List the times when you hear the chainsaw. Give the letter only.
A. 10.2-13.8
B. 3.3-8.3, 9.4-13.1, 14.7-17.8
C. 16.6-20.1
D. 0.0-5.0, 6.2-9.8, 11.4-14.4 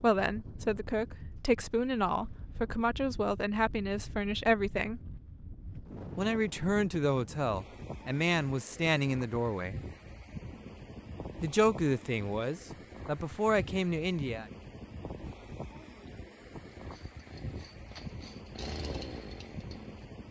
C.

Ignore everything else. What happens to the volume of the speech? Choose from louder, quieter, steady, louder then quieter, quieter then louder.
steady.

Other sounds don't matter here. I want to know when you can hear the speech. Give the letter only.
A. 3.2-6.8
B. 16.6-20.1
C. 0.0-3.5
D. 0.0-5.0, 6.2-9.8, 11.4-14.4
D.